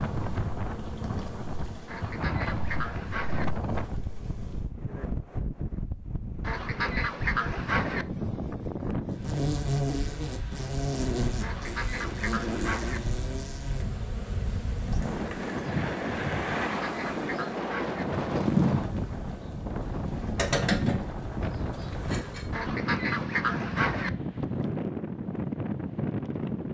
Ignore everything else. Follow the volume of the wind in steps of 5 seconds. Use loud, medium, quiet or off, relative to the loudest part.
loud, loud, medium, loud, loud, loud.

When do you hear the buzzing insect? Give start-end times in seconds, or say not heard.
0.0-4.7, 9.1-22.5.